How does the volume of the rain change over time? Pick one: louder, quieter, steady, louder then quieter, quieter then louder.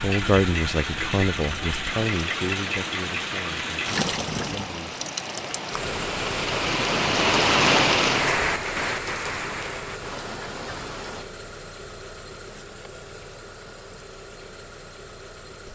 louder then quieter.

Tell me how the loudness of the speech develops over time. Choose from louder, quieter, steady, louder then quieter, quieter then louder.
quieter.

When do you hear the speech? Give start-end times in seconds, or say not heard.
0.0-5.0.